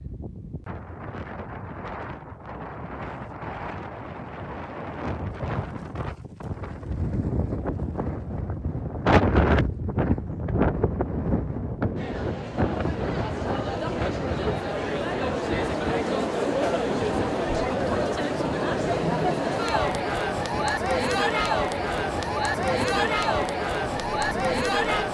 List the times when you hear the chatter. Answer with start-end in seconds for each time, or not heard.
11.9-25.0.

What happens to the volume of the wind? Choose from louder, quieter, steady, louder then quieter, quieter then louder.
louder then quieter.